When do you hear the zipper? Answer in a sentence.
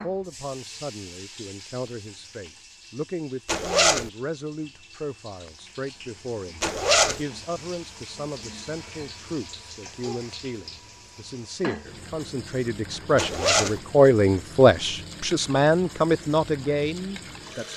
The zipper can be heard from 3.5 to 4.1 s, from 6.6 to 7.2 s and from 13.2 to 13.8 s.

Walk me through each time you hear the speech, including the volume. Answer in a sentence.
You can hear the speech from 0.0 to 17.7 s, getting louder.